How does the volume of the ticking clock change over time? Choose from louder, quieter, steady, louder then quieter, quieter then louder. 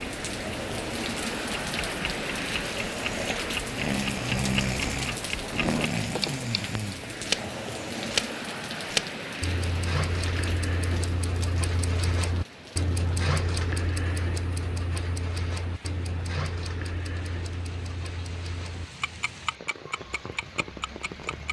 louder then quieter.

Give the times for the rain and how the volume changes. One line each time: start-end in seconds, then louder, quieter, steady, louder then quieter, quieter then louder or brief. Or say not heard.
0.0-21.4 quieter.